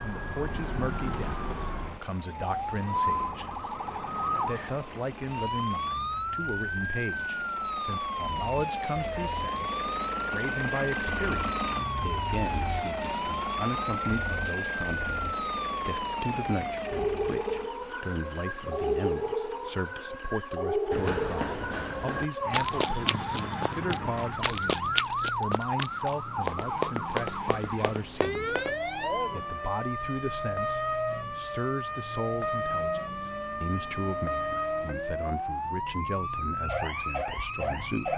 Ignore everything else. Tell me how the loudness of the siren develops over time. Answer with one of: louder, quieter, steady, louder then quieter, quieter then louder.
steady.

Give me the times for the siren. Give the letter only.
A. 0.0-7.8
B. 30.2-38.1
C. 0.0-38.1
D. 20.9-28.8
C.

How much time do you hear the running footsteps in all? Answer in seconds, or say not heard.
8 s.